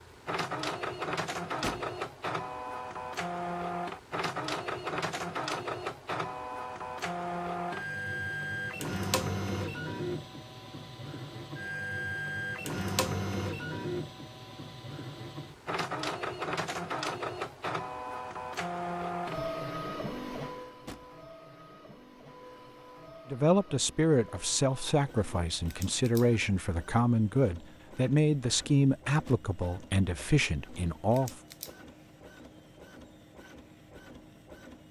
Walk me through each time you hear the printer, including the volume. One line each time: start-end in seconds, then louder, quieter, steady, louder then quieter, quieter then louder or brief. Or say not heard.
0.0-34.8 quieter.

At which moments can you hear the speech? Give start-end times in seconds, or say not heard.
23.3-31.4.